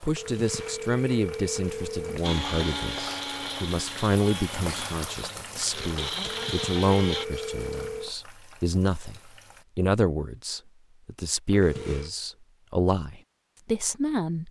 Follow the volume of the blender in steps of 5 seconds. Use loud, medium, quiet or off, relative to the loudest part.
loud, loud, off.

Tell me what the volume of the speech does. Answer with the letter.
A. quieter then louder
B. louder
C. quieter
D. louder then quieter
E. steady
E.